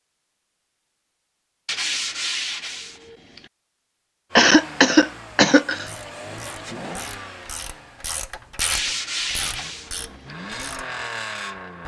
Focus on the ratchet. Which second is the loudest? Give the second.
9 s.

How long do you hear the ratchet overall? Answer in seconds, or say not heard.
5 s.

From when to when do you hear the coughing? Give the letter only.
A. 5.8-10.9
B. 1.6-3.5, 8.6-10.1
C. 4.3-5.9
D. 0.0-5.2
C.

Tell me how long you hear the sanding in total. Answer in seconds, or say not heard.
3 s.